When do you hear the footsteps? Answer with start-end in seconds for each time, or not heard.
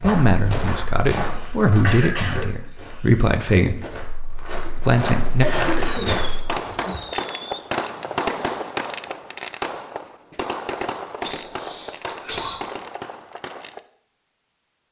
0.0-6.5.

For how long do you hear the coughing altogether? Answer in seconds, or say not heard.
4 s.